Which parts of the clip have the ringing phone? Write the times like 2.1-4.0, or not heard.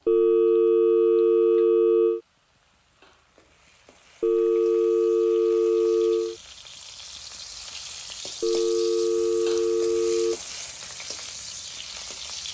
0.1-2.2, 4.2-6.3, 8.4-10.4.